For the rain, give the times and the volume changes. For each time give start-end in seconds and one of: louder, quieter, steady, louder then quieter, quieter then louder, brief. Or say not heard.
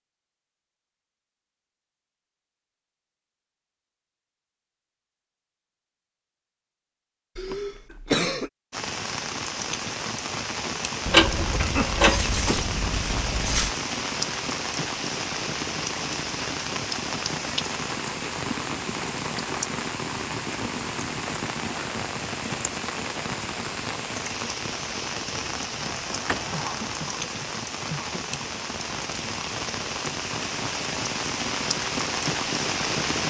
8.7-33.2 steady.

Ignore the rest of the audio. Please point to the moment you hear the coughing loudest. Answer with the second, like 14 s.
8 s.